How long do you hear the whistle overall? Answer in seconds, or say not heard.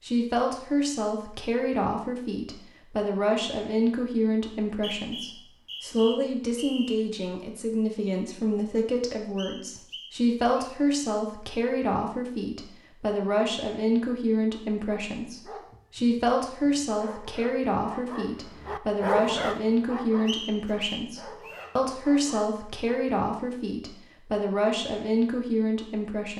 5 s.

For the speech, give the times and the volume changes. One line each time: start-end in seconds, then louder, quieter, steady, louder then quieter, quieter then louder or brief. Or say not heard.
0.0-26.3 steady.